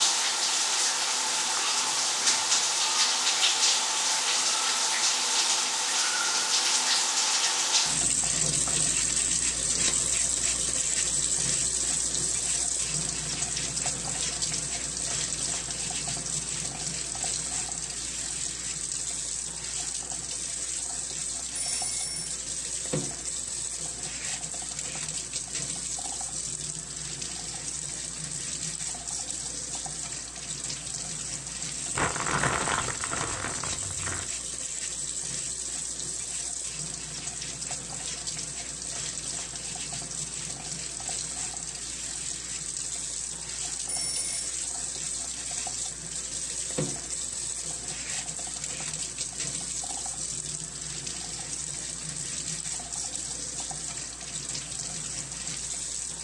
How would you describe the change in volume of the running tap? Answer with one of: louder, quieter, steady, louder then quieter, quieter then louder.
quieter.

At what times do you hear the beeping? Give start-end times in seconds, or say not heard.
21.6-22.4, 43.9-44.5.